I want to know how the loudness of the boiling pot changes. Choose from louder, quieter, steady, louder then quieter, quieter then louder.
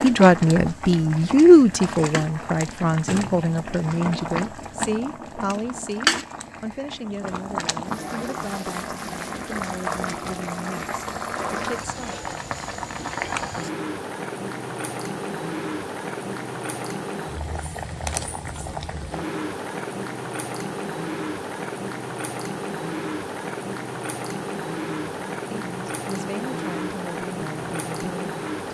steady.